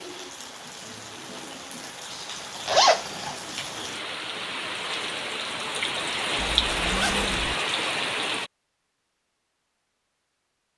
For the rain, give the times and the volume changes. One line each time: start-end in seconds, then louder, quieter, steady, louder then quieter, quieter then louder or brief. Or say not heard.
0.0-8.5 louder.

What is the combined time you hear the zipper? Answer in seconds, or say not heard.
2 s.